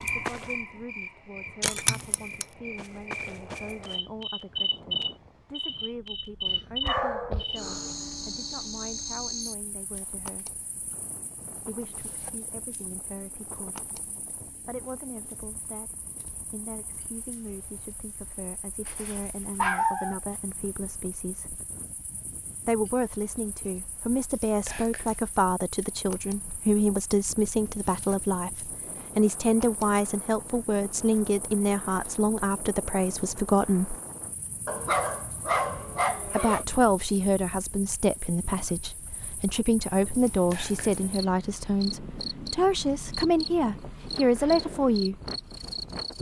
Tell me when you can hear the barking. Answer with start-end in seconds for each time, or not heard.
6.5-7.9, 18.9-20.2, 34.6-36.6.